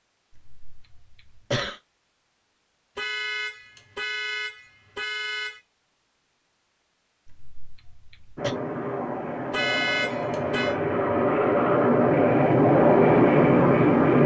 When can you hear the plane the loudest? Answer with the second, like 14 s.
13 s.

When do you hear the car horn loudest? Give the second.
10 s.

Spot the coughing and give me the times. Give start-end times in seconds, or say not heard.
0.3-1.8, 7.2-8.6.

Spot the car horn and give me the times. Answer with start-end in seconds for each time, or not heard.
3.0-5.6, 9.5-10.8.